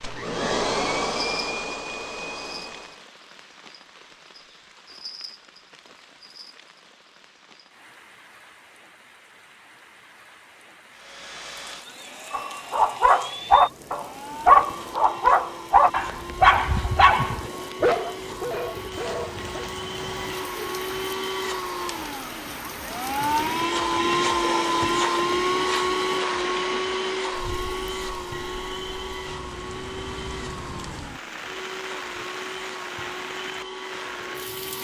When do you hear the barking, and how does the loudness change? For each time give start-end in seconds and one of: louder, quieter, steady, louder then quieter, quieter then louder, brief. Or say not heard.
12.3-19.7 quieter.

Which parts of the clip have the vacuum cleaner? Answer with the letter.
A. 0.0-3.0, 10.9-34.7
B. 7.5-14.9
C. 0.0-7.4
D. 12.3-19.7
A.